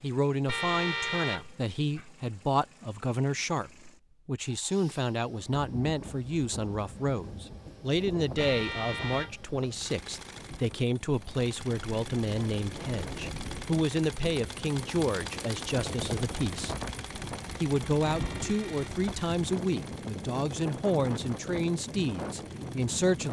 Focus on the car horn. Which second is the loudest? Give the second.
1 s.